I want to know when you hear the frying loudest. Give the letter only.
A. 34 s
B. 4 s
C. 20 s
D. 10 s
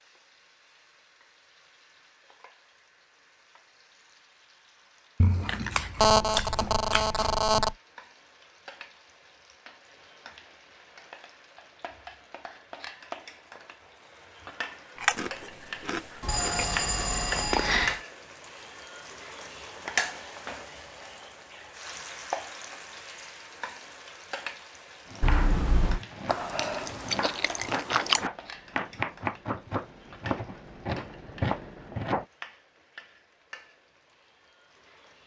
C.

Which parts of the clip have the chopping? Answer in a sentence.
The chopping can be heard from 25.1 to 32.2 s.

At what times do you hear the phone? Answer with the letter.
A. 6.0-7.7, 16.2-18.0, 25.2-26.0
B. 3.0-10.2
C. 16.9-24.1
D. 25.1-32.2
A.